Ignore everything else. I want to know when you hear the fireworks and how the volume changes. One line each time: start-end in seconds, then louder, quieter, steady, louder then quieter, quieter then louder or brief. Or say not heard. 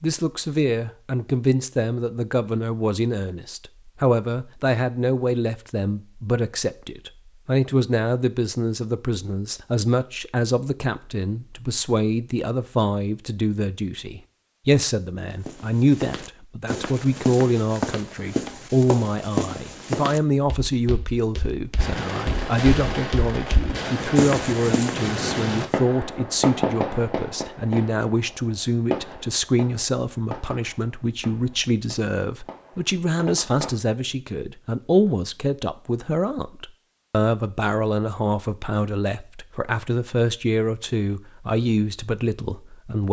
21.8-33.7 quieter.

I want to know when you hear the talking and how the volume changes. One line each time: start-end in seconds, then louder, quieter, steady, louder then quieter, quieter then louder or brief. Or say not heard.
0.0-43.0 steady.